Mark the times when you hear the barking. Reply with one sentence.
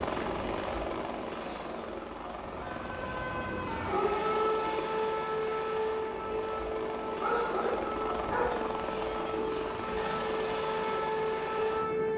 The barking can be heard from 7.2 to 8.6 s.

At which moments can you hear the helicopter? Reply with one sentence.
You can hear the helicopter from 0.0 to 12.1 s.